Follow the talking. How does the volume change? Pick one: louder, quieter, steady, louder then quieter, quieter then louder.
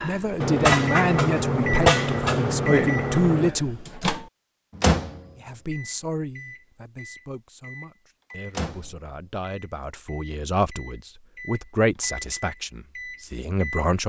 quieter then louder.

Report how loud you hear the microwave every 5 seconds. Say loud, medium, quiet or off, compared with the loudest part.
loud, quiet, quiet.